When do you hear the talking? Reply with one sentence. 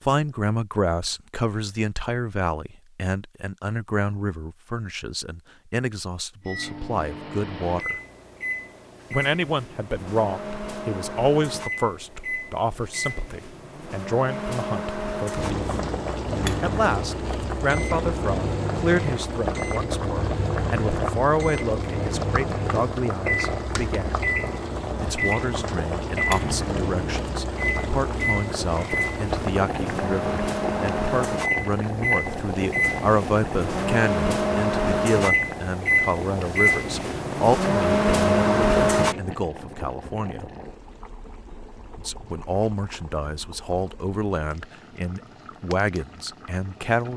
The talking can be heard from 0.0 to 8.0 s, from 9.1 to 15.8 s, from 16.6 to 24.2 s, from 25.0 to 40.5 s and from 42.0 to 47.1 s.